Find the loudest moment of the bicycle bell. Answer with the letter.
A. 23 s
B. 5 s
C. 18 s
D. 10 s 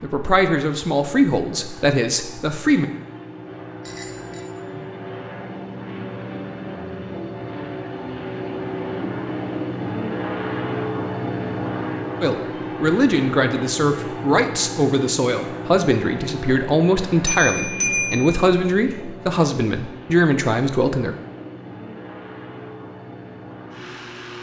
C.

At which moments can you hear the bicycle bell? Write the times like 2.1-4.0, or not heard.
3.8-4.5, 17.2-18.9.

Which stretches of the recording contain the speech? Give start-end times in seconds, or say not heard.
0.0-2.9, 12.2-21.1.